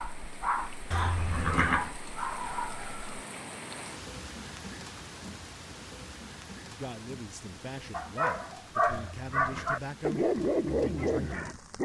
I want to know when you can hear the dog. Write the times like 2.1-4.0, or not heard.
0.0-3.1, 7.9-11.8.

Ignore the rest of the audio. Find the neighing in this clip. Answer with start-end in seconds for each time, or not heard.
0.9-1.9, 8.8-9.8.